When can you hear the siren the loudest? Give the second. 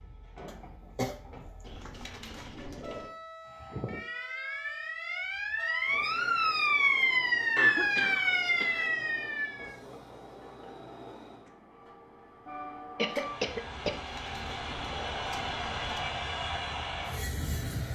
7 s.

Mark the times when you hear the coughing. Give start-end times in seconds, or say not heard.
0.5-1.1, 7.5-8.8, 12.9-14.0.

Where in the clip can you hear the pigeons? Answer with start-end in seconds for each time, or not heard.
1.6-3.1, 13.9-16.1.